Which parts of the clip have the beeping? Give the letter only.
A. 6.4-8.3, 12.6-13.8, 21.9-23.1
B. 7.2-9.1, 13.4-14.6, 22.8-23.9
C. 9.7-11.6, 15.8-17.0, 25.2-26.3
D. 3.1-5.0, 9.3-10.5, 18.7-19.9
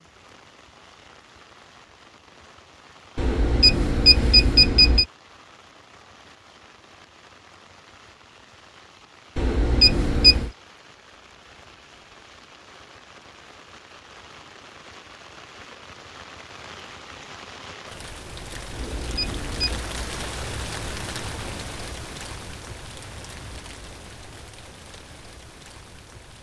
D.